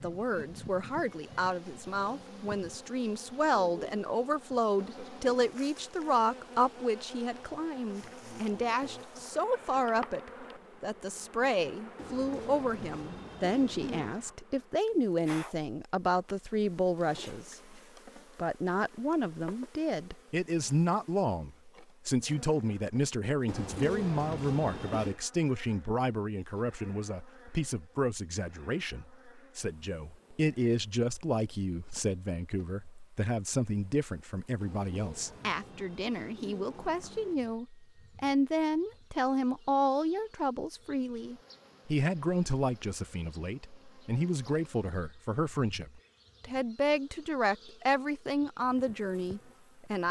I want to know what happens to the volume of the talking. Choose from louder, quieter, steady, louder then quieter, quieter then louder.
steady.